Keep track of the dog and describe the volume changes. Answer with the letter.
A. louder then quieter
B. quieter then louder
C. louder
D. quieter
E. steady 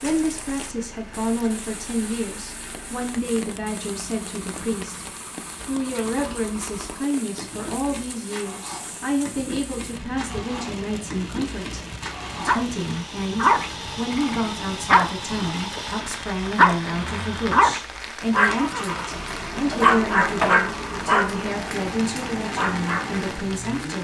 D.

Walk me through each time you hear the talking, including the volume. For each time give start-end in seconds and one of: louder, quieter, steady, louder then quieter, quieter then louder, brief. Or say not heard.
0.0-23.9 steady.